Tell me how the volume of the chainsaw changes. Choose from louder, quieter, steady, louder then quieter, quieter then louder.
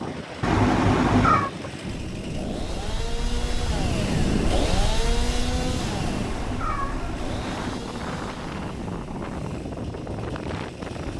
louder then quieter.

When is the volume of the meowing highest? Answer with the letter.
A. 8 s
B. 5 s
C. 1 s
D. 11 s
C.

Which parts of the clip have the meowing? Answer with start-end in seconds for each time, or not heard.
0.4-1.5, 5.8-7.8.